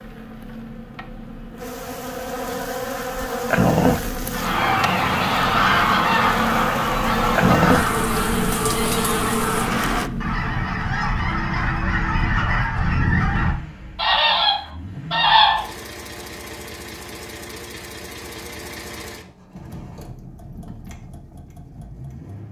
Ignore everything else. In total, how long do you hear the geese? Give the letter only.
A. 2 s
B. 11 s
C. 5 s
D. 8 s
B.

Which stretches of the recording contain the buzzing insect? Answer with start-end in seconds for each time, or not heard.
0.0-10.1.